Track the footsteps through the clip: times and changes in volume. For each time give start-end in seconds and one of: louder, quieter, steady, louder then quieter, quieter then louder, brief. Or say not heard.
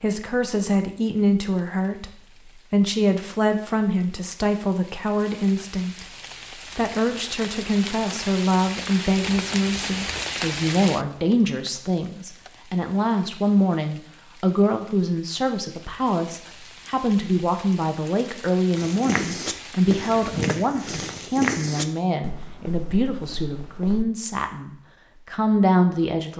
18.8-24.1 quieter.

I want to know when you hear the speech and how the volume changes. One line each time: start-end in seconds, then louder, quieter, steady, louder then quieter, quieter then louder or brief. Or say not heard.
0.0-26.3 steady.